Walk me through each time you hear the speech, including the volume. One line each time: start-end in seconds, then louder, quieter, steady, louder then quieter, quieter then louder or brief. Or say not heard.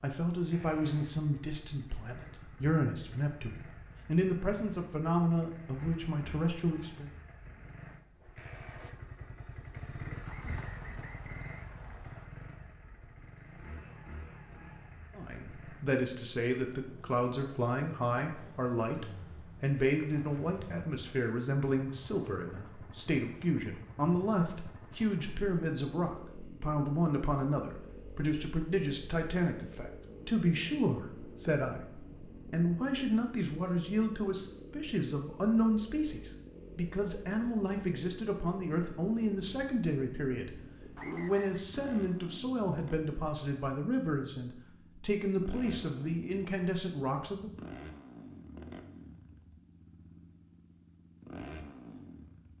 0.0-7.1 steady
15.2-47.5 steady.